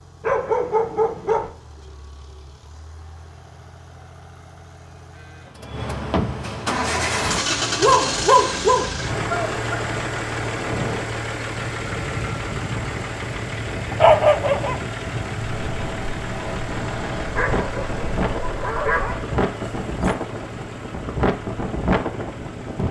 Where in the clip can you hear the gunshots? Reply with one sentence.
You can't hear the gunshots here.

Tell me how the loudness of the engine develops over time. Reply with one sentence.
The loudness of the engine goes up, then down.